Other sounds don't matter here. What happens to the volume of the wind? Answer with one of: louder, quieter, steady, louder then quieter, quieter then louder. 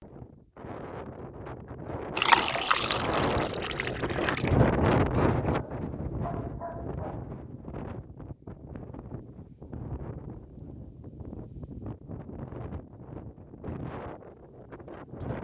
louder then quieter.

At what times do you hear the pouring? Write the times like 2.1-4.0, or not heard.
2.1-4.5.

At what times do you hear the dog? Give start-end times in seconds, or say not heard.
5.5-7.3.